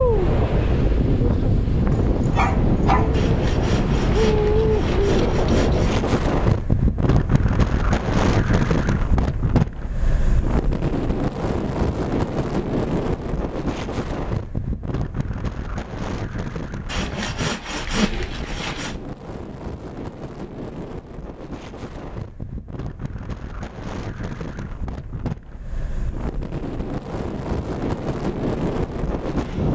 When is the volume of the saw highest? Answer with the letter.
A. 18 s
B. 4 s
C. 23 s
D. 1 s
A.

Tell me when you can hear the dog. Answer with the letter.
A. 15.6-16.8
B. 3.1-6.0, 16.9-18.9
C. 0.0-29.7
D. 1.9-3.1
D.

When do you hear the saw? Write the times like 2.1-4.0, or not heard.
3.1-6.0, 16.9-18.9.